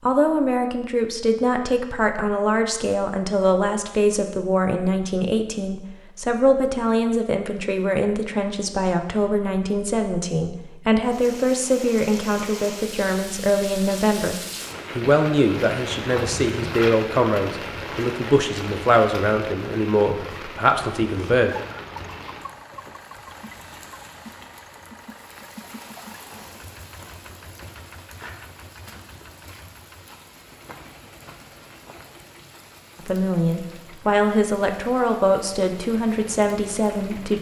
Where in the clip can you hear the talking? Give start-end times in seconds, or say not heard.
0.0-14.3, 14.9-21.6, 33.0-37.3.